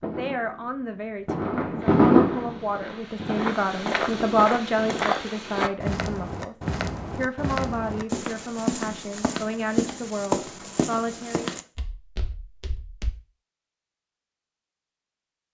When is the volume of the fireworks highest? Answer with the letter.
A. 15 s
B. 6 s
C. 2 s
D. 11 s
C.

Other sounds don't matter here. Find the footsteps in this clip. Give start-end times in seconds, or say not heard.
1.8-13.2.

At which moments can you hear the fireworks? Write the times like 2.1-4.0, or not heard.
0.0-5.1.